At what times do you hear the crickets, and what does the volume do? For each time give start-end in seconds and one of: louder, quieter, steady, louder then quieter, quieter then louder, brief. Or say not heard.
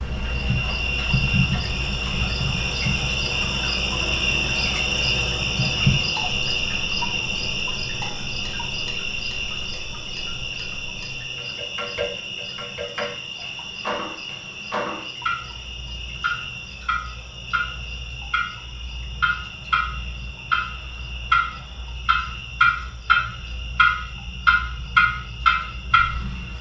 0.0-26.5 quieter.